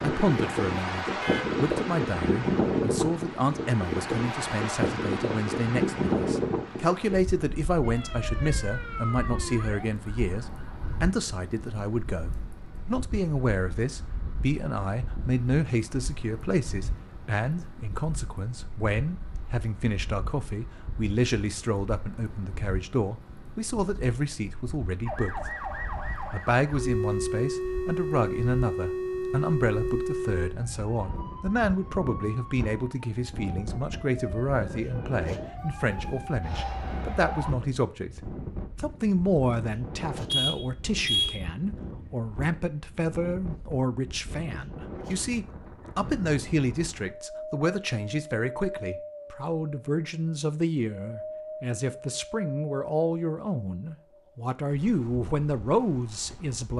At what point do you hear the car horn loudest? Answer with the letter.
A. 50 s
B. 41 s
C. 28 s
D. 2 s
B.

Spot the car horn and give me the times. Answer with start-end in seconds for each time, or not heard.
1.2-1.6, 40.2-41.4.